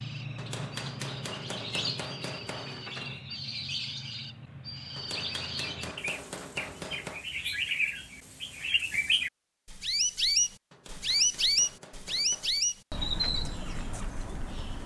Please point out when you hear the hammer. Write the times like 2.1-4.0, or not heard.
0.3-3.2, 5.0-7.2, 10.7-12.7.